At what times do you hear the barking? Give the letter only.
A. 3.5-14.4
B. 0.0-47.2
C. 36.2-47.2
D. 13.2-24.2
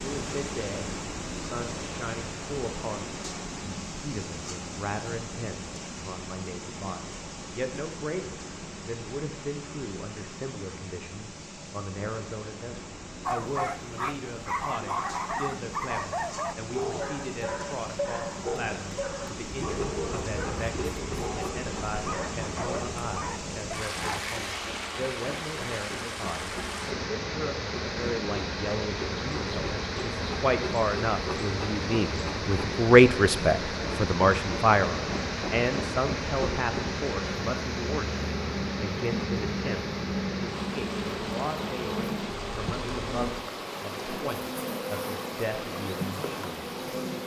D.